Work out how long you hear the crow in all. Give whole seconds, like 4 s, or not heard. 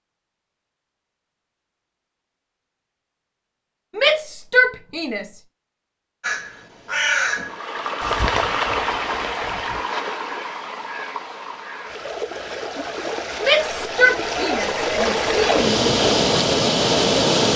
6 s.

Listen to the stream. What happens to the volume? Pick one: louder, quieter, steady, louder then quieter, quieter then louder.
quieter then louder.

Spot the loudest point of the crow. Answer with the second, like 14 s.
7 s.